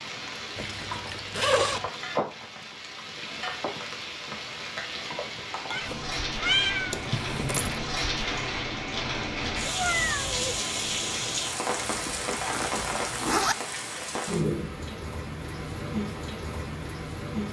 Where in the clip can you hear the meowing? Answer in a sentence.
The meowing can be heard from 5.7 to 7.0 s and from 9.6 to 10.6 s.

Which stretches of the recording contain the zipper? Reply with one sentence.
You can hear the zipper from 0.6 to 1.9 s, from 6.9 to 7.8 s and from 11.8 to 13.6 s.